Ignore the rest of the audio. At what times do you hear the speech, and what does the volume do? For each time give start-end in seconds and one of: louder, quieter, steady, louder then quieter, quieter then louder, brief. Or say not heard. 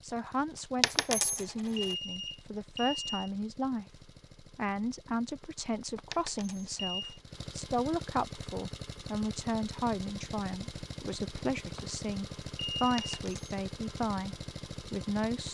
0.0-15.5 steady.